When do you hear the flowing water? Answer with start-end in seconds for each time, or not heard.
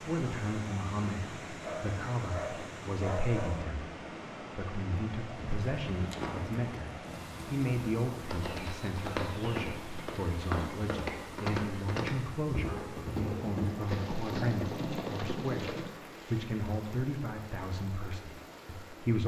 0.0-19.2.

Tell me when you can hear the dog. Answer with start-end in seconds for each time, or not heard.
1.6-3.5, 12.7-14.1.